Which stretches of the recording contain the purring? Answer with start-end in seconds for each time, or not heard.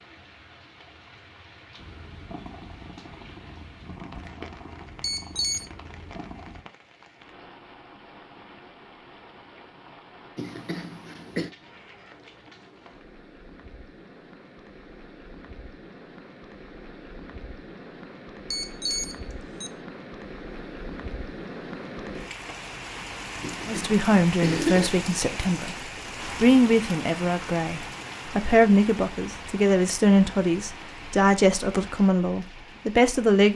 1.8-6.7.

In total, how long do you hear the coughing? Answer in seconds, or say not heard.
3 s.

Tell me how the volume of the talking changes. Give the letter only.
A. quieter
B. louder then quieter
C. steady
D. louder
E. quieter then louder
C.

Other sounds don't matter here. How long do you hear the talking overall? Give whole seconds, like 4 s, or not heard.
10 s.